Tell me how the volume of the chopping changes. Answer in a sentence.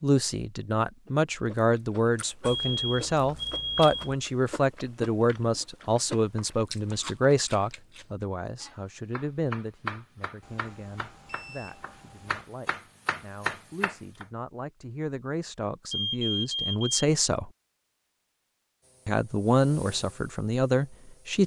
The volume of the chopping goes up.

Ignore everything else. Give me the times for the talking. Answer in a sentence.
You can hear the talking from 0.0 to 17.5 s and from 19.1 to 21.4 s.